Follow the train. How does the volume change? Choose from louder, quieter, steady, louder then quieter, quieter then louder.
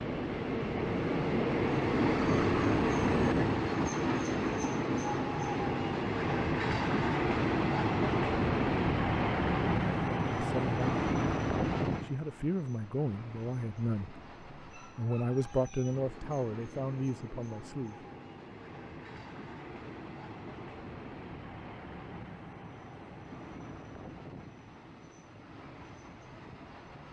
quieter.